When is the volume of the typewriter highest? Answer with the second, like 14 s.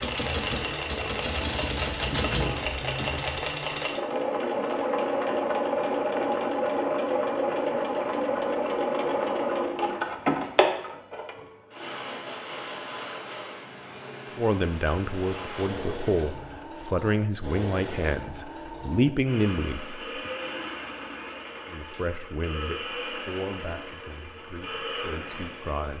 2 s.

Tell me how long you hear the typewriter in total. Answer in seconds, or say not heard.
3 s.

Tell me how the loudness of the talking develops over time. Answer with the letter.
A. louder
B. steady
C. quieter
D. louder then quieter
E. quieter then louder
C.